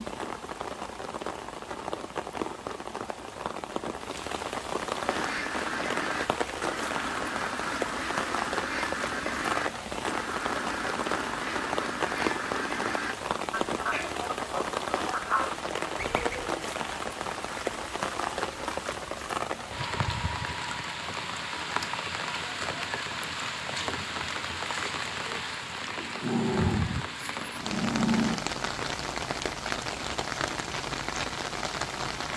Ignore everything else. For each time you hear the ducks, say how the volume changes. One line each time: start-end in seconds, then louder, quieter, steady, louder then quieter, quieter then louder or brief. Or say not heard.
5.0-16.6 steady.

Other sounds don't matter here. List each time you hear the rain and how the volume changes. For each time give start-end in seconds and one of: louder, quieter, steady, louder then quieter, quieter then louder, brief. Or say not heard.
0.0-32.3 steady.